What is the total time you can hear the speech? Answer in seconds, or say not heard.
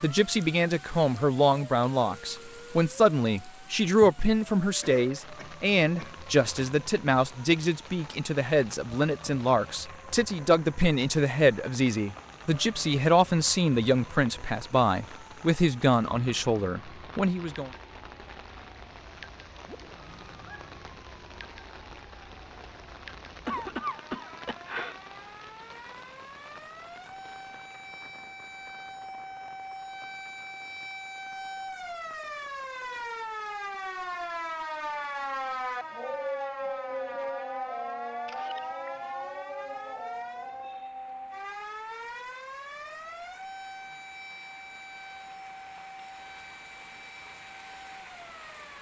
18 s.